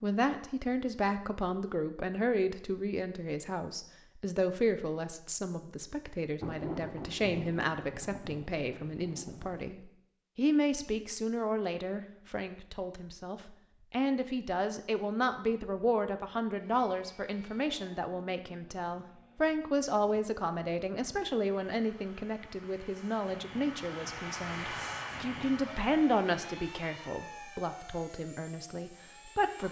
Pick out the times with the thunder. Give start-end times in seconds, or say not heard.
6.4-9.7.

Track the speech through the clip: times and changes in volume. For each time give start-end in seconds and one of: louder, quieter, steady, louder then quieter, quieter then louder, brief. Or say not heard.
0.0-29.6 steady.